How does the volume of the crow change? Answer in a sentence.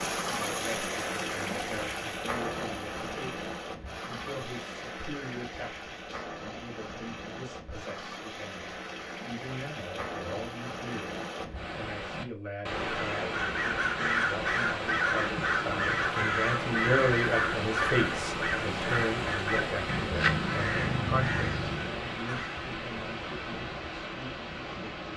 The loudness of the crow stays about the same.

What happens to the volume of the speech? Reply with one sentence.
The volume of the speech goes up, then down.